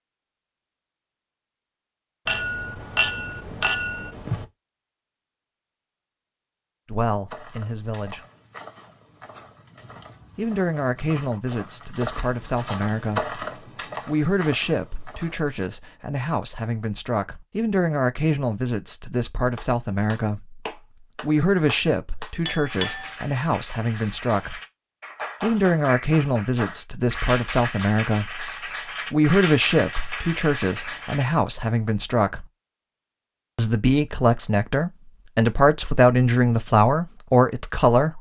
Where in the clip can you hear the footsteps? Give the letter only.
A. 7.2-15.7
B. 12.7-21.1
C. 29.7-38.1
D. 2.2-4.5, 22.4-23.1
A.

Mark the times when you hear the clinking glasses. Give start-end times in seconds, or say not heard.
2.2-4.5, 22.4-23.1.